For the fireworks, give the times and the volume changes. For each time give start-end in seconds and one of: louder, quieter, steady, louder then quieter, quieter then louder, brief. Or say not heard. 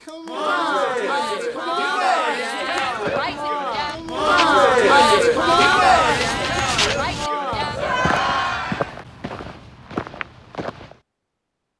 not heard.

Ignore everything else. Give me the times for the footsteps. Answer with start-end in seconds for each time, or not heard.
2.6-11.0.